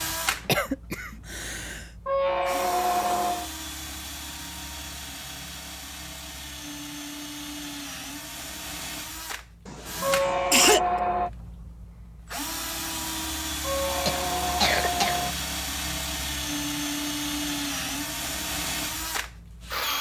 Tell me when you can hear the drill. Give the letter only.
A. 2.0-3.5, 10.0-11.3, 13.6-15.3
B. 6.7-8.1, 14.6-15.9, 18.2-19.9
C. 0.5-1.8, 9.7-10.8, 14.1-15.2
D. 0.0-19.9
D.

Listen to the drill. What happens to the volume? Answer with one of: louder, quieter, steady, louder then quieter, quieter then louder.
louder.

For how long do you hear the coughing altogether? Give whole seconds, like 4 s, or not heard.
4 s.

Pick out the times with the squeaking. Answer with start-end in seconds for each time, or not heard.
2.0-3.5, 10.0-11.3, 13.6-15.3.